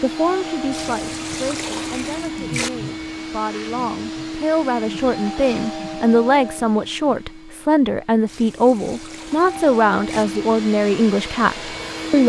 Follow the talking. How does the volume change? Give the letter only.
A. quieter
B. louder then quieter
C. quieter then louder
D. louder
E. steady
D.